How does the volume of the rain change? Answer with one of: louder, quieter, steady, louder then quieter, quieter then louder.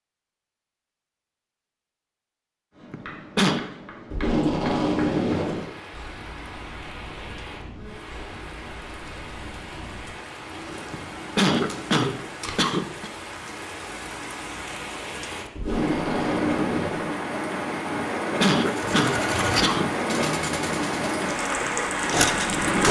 louder.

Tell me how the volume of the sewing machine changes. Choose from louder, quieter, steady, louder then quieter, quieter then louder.
quieter then louder.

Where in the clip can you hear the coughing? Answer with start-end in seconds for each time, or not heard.
2.9-3.6, 10.9-13.1, 17.9-19.9.